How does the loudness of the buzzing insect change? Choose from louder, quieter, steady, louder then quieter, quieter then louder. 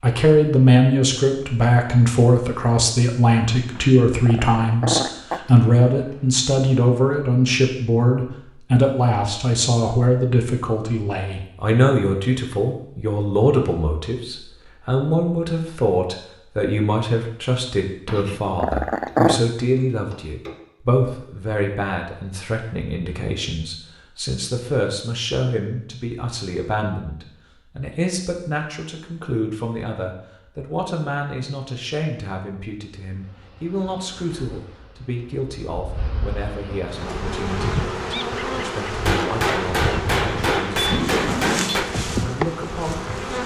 louder.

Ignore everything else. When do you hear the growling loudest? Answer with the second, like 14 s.
19 s.